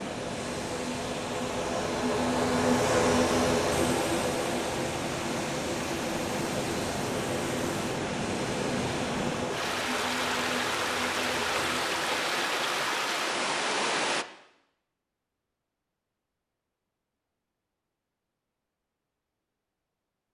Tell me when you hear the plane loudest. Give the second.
3 s.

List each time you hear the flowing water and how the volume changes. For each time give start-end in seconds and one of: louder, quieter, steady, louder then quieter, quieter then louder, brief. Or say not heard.
0.0-14.2 louder.